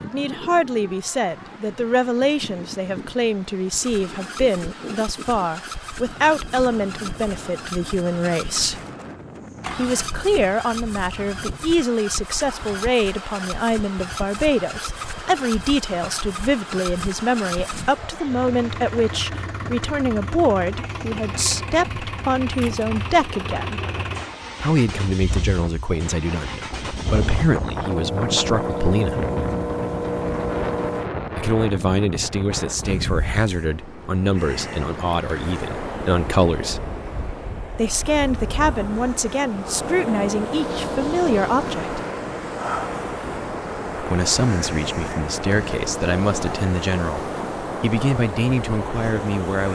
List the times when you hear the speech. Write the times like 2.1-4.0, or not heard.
0.0-8.8, 9.8-23.8, 24.6-29.2, 31.4-36.9, 37.8-42.0, 44.0-49.6.